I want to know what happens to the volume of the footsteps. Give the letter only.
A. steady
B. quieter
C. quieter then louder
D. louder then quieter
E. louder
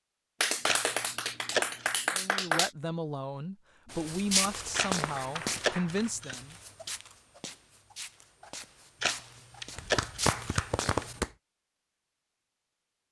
C.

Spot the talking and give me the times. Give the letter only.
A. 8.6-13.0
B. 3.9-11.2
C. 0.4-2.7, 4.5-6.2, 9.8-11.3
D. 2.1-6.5
D.